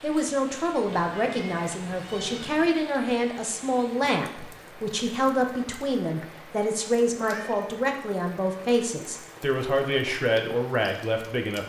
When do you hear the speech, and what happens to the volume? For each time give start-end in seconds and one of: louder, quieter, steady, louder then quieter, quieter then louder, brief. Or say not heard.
0.0-11.6 steady.